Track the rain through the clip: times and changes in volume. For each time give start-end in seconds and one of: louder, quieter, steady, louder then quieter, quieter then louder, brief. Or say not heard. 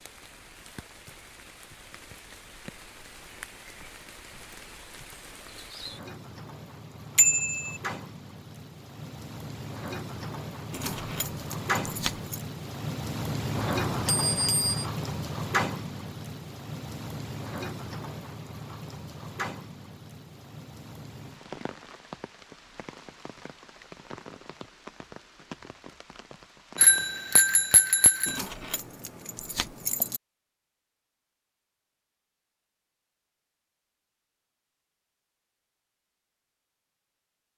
0.0-27.1 louder then quieter.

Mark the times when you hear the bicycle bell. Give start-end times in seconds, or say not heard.
7.2-7.8, 13.6-14.7, 26.8-28.4.